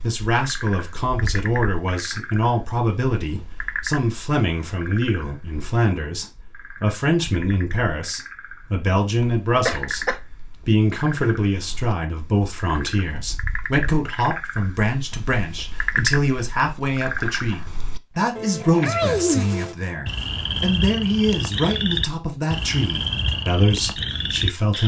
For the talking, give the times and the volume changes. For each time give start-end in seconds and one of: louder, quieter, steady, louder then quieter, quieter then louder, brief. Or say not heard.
0.0-24.8 steady.